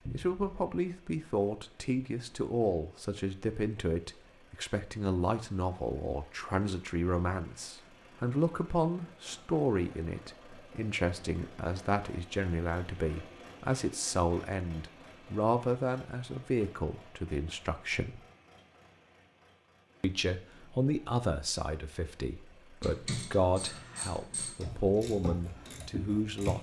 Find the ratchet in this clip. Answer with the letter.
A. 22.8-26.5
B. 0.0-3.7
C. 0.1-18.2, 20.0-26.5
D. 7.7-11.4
A.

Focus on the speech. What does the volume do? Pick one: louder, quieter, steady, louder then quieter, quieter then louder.
steady.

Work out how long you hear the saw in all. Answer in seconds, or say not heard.
not heard.